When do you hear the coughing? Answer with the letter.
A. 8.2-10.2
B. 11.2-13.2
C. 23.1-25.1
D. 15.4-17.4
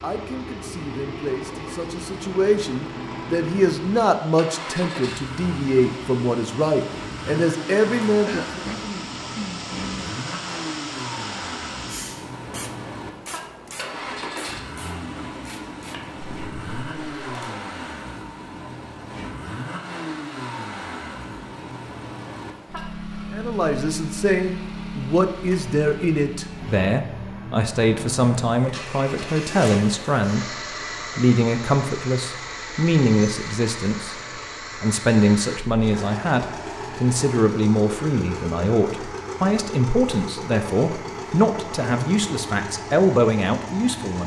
A.